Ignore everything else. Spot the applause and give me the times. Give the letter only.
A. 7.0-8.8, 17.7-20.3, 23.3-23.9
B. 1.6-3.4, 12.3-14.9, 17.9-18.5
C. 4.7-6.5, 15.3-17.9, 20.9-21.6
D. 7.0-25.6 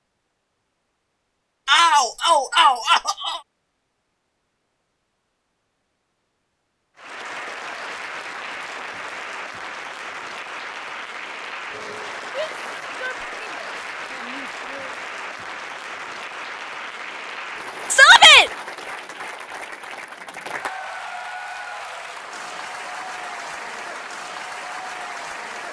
D.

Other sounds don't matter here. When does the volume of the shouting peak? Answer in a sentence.
The volume of the shouting peaks at 18 seconds.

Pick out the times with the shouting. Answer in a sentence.
You can hear the shouting from 1.6 to 3.4 s, from 12.3 to 14.9 s and from 17.9 to 18.5 s.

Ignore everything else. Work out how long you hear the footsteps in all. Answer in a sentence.
You can't hear the footsteps here.